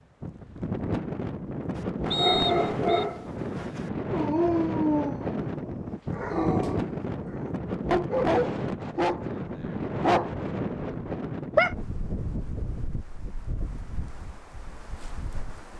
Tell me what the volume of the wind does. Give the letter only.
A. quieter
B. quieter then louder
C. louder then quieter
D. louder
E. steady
A.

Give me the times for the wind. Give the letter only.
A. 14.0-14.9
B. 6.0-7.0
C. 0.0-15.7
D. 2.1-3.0
C.